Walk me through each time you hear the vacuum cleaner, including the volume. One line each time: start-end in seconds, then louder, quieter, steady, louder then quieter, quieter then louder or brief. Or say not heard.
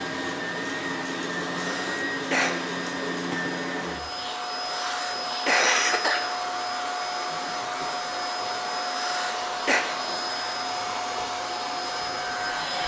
0.0-12.8 steady.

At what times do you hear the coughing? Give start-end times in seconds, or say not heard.
1.6-2.5, 4.7-6.2, 8.8-9.8.